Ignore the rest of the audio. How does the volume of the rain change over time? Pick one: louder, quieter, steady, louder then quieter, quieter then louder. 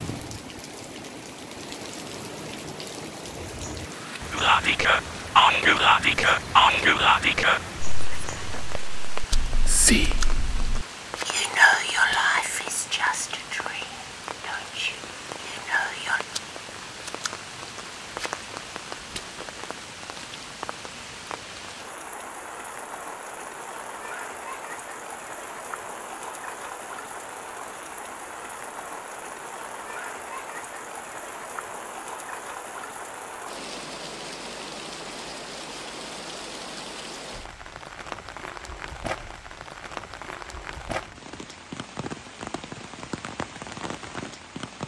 steady.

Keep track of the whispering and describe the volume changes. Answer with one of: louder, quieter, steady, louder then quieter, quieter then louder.
quieter.